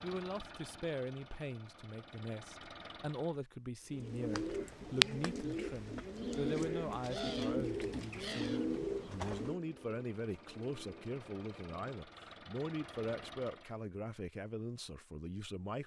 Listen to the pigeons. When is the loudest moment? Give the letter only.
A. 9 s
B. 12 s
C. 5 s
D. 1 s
C.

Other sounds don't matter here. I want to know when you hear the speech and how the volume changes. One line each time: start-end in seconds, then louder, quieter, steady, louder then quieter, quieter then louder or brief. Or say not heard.
0.0-15.8 steady.